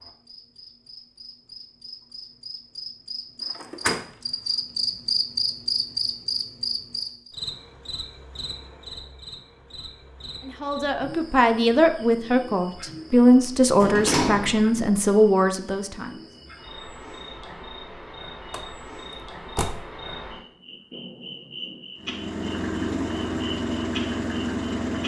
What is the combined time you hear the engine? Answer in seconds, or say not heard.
3 s.